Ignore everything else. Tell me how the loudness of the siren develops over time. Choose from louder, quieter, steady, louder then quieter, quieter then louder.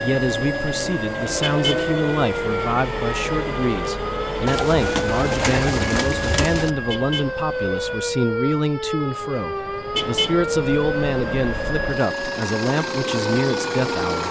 steady.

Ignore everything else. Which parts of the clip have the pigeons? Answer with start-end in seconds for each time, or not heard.
4.5-6.7.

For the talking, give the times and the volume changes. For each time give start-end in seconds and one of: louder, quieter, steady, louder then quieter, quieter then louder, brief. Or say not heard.
0.0-14.2 steady.